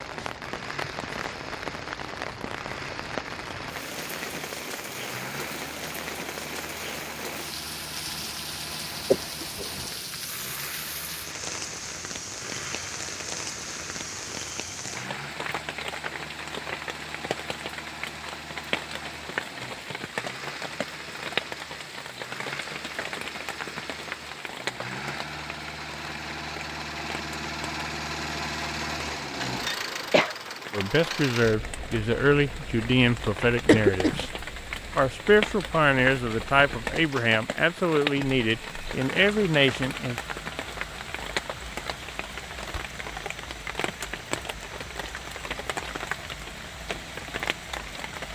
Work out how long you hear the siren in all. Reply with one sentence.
The siren can't be heard in this clip.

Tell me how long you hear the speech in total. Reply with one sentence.
The speech can be heard for 9 seconds in total.